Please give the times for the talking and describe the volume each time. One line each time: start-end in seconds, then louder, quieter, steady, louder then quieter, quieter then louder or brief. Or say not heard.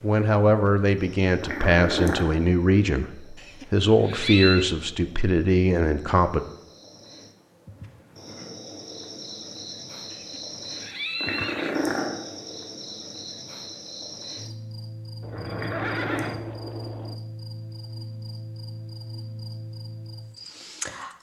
0.0-6.4 steady.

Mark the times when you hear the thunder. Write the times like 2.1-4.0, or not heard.
not heard.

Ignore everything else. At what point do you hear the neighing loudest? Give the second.
4 s.